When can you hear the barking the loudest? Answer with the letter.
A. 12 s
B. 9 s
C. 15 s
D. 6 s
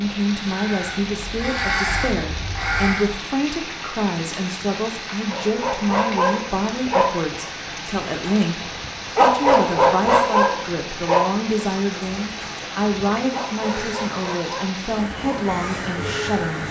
B.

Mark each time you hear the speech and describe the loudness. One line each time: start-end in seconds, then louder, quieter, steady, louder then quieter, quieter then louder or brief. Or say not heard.
0.0-16.6 steady.